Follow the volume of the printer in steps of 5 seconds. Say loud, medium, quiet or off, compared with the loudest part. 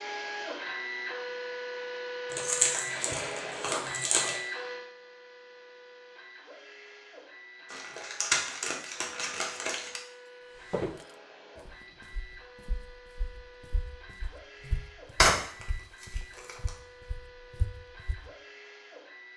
loud, quiet, quiet, quiet.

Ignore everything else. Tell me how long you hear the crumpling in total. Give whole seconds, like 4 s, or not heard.
6 s.